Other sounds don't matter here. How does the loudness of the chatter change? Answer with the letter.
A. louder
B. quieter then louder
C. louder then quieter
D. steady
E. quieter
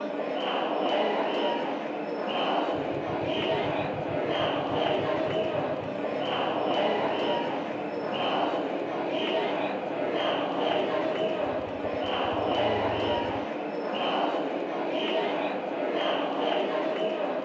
D.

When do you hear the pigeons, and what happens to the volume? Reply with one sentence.
The pigeons can't be heard in this clip.